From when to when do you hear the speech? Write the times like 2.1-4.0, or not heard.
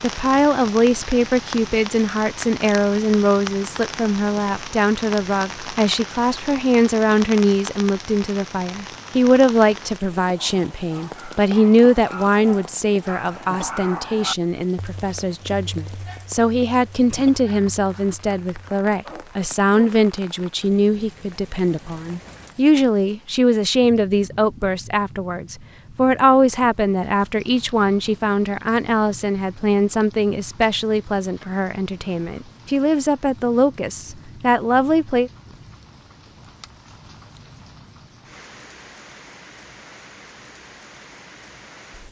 0.0-35.3.